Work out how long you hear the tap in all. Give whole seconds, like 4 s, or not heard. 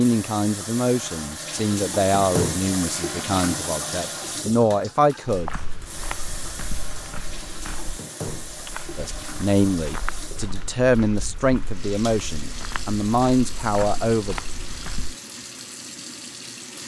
17 s.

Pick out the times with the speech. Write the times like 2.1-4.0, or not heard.
0.0-5.5, 8.9-14.3.